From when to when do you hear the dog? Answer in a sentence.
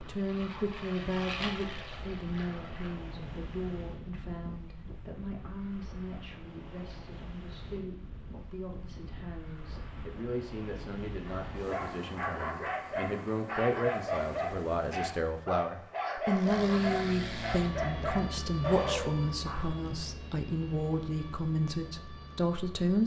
You can hear the dog from 11.2 to 19.6 s.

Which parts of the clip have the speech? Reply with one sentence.
The speech can be heard from 0.0 to 23.0 s.